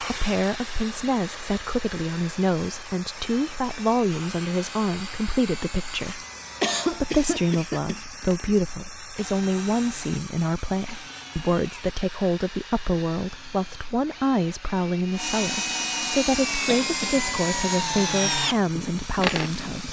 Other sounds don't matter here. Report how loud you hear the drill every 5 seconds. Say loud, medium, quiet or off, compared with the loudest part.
quiet, quiet, quiet, loud.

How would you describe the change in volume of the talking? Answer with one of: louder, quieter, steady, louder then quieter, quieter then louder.
steady.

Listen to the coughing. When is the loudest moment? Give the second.
7 s.